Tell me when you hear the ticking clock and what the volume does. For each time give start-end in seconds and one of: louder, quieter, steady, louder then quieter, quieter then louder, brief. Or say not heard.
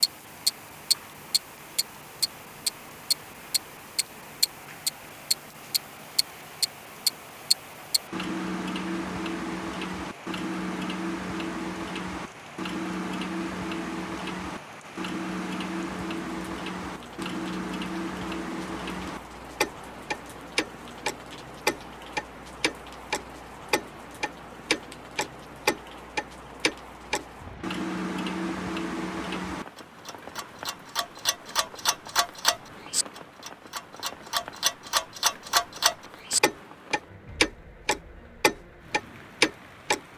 0.0-40.0 quieter then louder.